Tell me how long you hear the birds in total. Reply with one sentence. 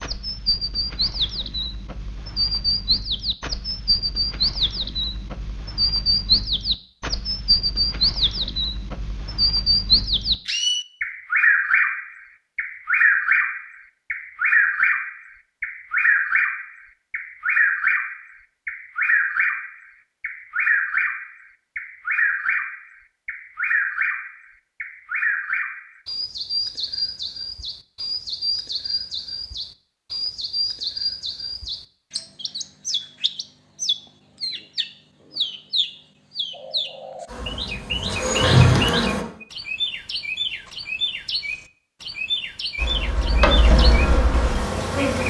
You can hear the birds for 45 seconds altogether.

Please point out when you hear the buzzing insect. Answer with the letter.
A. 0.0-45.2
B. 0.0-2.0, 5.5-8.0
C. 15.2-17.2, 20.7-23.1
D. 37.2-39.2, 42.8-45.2
D.